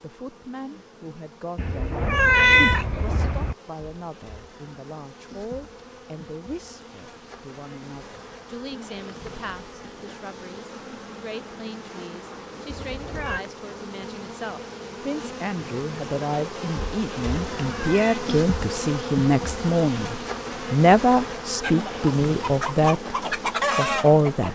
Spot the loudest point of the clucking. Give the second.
24 s.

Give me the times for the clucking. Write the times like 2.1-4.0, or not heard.
21.6-24.4.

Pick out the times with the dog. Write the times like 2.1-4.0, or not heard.
not heard.